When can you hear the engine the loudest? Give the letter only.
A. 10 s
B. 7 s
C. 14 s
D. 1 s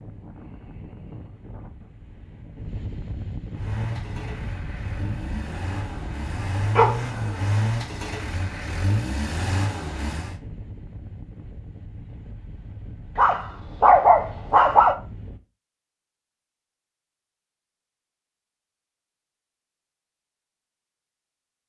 B.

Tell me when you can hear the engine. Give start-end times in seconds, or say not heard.
3.5-10.4.